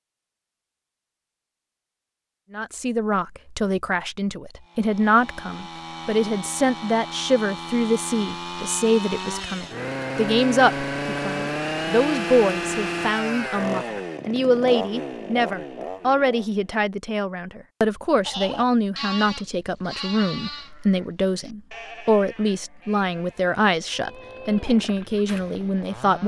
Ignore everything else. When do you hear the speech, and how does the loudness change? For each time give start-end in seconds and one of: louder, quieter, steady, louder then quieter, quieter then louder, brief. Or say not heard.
2.5-26.2 steady.